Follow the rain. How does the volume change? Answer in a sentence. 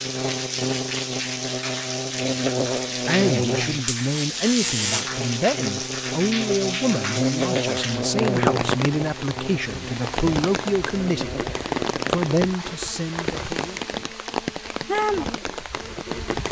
The loudness of the rain stays about the same.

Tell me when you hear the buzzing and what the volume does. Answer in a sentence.
You can hear the buzzing from 0.0 to 16.4 s, getting quieter.